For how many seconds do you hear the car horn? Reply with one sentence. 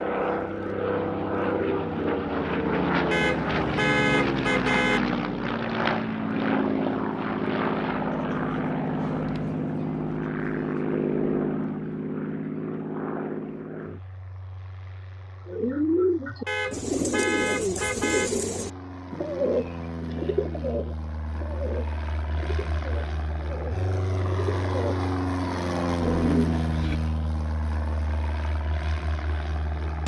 The car horn can be heard for 4 seconds in total.